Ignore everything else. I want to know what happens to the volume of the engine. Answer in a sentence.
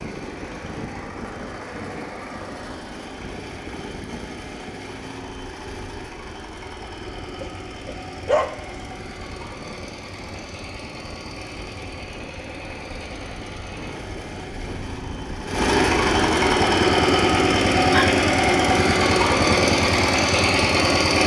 The volume of the engine goes up.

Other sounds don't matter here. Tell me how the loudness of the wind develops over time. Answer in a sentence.
The loudness of the wind goes down, then up.